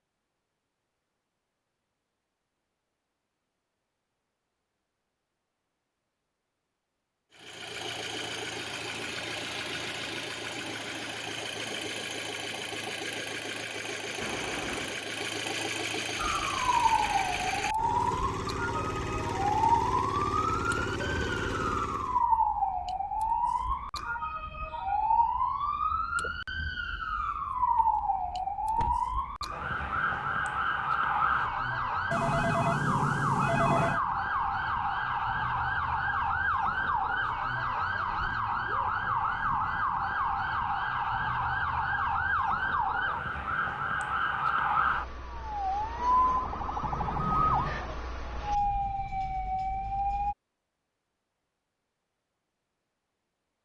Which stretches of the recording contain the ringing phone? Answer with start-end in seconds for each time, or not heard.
32.1-34.0.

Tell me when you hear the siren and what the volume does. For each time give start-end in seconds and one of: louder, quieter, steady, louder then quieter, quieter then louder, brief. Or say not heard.
16.1-50.4 steady.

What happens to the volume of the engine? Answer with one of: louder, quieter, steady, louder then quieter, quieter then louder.
steady.